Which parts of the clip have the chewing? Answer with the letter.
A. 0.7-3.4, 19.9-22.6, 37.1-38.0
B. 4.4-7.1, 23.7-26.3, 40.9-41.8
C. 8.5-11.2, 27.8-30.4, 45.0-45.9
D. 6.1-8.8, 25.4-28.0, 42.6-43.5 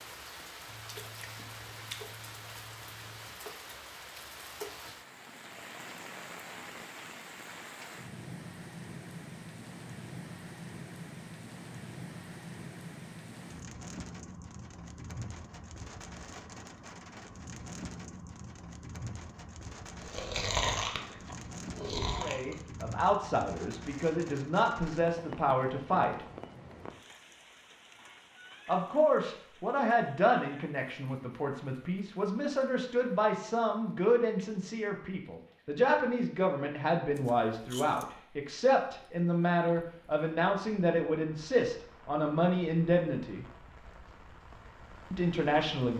A.